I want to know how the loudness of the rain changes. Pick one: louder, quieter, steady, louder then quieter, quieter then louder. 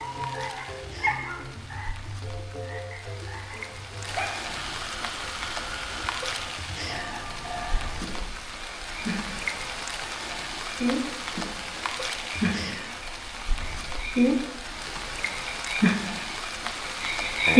louder.